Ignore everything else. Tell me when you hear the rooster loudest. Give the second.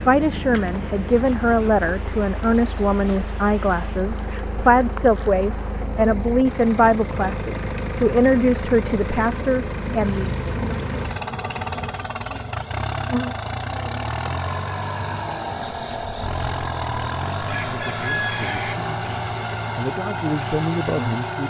18 s.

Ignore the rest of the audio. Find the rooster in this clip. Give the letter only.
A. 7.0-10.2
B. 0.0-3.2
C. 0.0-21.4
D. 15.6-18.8
D.